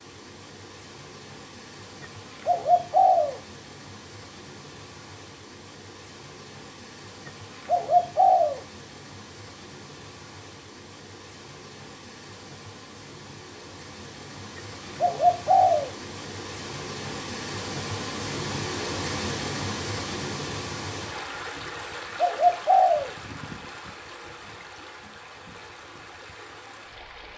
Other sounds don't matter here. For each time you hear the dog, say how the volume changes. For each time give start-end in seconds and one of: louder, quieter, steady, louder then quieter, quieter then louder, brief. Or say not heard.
not heard.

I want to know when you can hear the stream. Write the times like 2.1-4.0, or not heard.
0.0-27.3.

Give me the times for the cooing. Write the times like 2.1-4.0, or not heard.
2.5-3.4, 7.7-8.6, 15.0-15.9, 22.1-23.1.